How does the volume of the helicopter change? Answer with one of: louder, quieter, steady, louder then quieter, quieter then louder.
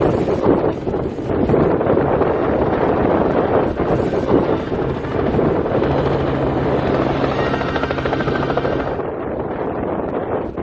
louder.